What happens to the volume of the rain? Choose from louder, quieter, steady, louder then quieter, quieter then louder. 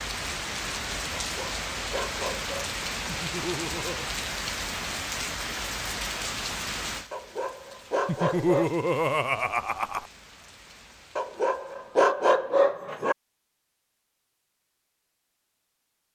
quieter.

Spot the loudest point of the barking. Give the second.
12 s.